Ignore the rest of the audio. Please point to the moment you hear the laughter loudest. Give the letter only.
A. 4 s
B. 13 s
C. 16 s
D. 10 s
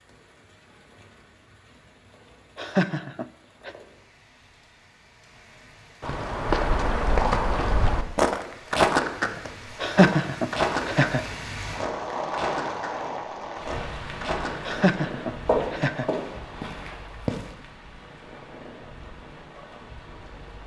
D.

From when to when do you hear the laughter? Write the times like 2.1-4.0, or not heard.
2.5-3.7, 9.8-11.2, 14.7-16.1.